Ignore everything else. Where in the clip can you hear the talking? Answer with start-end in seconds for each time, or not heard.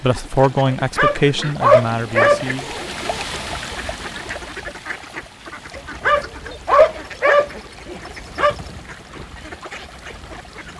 0.0-2.8.